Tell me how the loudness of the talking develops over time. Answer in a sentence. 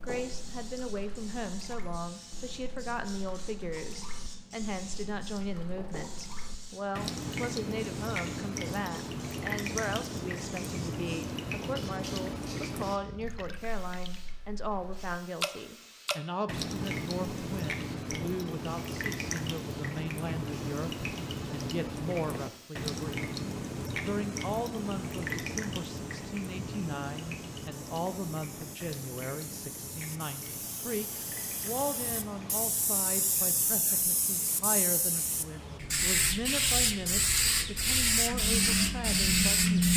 The loudness of the talking stays about the same.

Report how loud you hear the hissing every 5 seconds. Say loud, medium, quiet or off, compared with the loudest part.
quiet, quiet, quiet, quiet, quiet, quiet, medium, loud.